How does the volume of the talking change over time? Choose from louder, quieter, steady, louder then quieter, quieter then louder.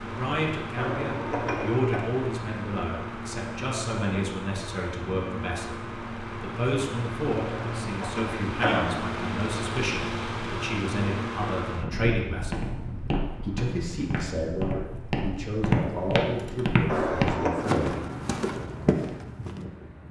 steady.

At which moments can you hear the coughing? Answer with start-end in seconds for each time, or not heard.
0.8-2.0, 7.5-9.1, 16.9-17.6.